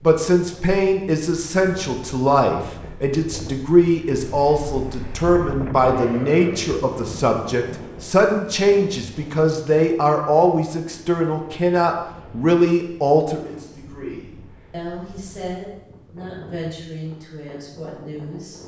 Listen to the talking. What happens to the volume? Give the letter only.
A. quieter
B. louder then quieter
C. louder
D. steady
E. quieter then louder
A.